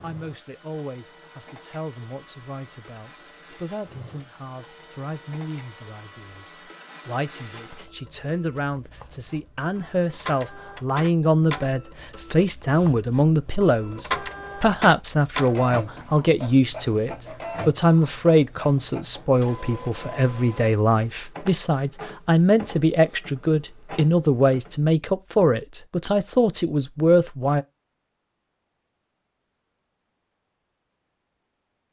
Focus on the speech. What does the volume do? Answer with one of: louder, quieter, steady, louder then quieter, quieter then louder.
louder.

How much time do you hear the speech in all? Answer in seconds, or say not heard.
28 s.